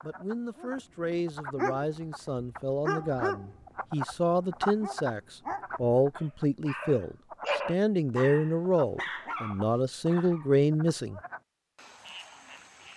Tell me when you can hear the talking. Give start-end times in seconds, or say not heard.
0.0-11.2.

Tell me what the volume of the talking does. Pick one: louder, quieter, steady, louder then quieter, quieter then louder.
louder.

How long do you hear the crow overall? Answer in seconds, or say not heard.
not heard.